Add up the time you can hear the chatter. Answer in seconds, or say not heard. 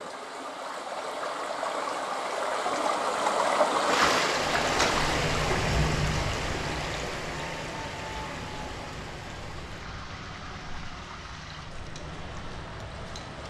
not heard.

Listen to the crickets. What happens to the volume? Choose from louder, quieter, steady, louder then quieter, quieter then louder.
quieter.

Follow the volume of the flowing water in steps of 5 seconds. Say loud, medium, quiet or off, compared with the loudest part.
loud, medium, quiet.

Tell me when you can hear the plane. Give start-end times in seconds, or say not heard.
7.3-13.4.